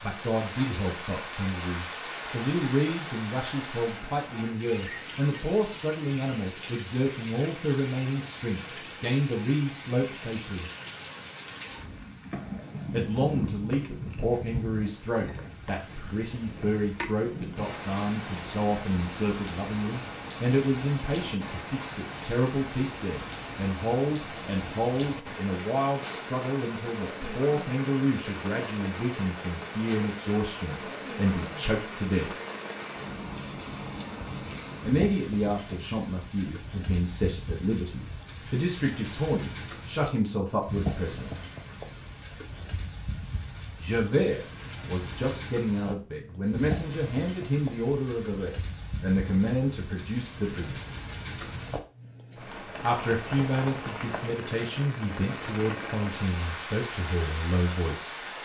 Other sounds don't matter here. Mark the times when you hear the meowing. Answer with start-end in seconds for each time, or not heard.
not heard.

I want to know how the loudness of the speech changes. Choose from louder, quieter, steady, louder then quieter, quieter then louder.
steady.